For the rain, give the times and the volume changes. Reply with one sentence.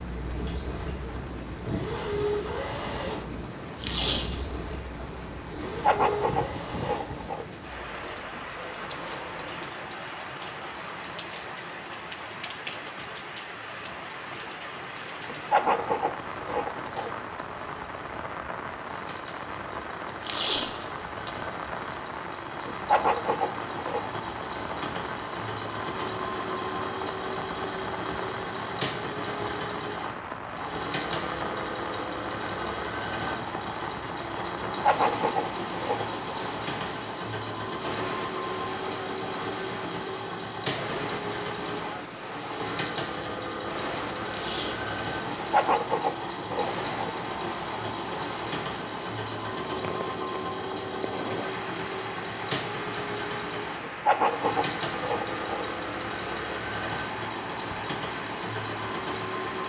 You can hear the rain from 0.0 to 59.6 s, at a steady volume.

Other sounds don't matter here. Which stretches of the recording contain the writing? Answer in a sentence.
The writing can be heard from 5.6 to 7.5 s, from 15.2 to 17.1 s, from 22.7 to 24.1 s, from 34.6 to 36.1 s, from 45.4 to 47.1 s and from 53.8 to 55.6 s.